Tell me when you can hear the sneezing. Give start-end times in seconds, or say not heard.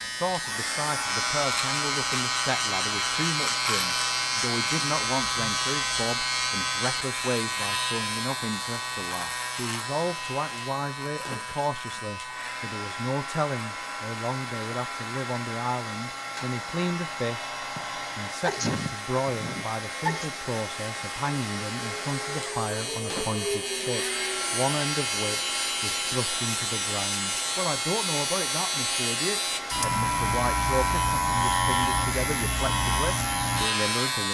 17.8-20.3.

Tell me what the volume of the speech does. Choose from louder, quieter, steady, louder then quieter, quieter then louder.
steady.